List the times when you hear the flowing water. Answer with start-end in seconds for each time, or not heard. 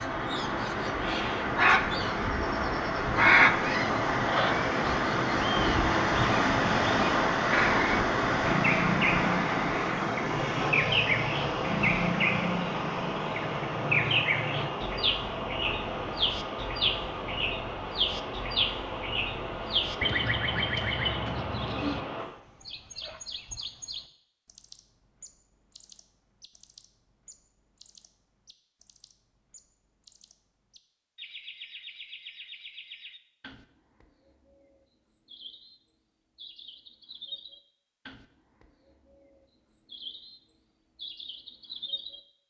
0.0-22.2.